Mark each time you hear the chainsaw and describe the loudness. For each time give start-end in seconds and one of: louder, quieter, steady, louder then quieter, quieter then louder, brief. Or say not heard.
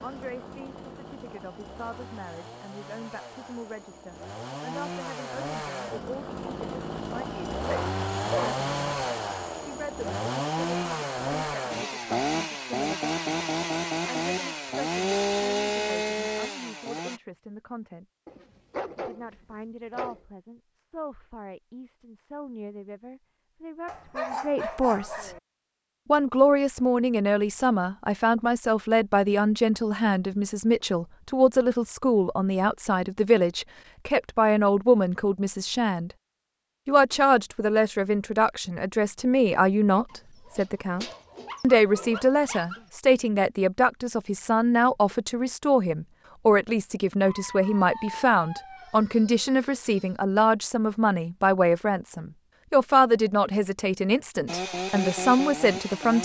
0.0-17.2 louder
54.5-56.2 brief.